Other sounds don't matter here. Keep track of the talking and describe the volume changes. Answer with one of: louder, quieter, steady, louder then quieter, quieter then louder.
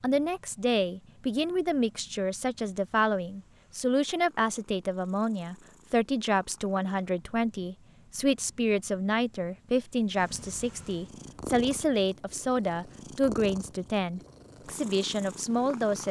steady.